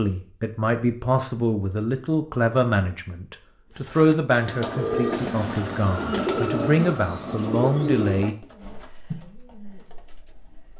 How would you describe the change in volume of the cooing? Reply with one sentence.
The loudness of the cooing goes down.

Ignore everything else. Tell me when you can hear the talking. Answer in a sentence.
The talking can be heard from 0.0 to 8.3 s.